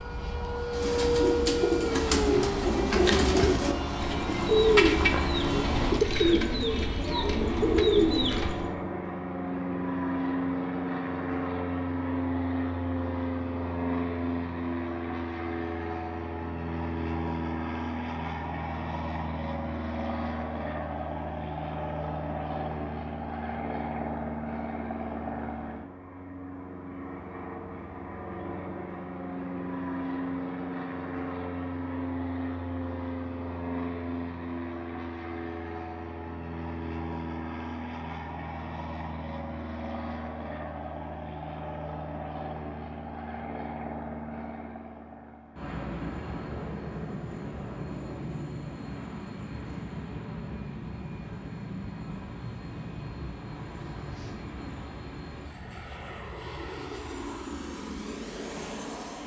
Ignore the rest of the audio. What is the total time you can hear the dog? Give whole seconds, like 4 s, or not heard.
not heard.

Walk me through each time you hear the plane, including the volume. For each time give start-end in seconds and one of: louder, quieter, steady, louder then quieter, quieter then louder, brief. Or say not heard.
0.0-59.2 quieter.